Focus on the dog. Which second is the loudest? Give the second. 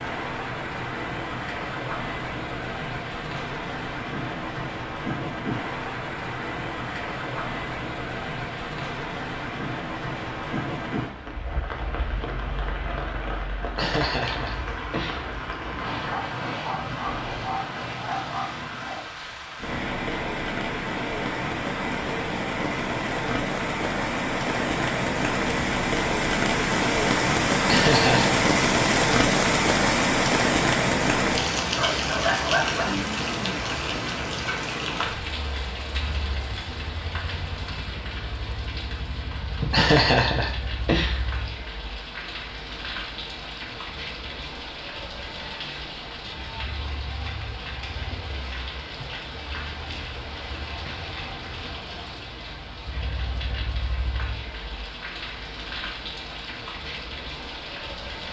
32 s.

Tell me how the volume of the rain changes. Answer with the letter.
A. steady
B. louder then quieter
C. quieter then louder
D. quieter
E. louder
B.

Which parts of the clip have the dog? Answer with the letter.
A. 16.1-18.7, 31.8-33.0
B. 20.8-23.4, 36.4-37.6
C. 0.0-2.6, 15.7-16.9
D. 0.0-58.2
A.